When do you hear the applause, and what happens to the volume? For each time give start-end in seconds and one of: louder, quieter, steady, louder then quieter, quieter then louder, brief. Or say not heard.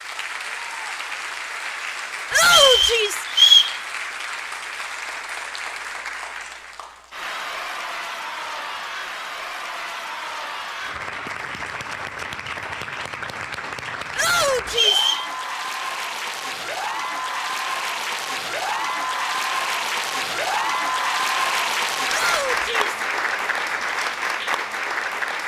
0.0-25.4 louder.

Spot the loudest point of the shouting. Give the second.
3 s.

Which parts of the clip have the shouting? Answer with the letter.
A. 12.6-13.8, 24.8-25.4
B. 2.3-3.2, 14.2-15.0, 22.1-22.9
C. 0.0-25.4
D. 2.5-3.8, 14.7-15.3
B.